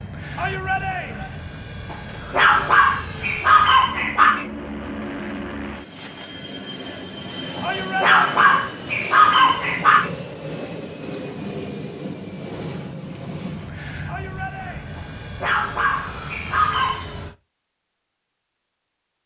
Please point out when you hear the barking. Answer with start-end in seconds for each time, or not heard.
1.9-4.5, 7.5-10.1, 14.9-17.1.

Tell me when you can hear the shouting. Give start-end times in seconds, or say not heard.
0.3-1.4, 7.6-8.6, 14.1-14.9.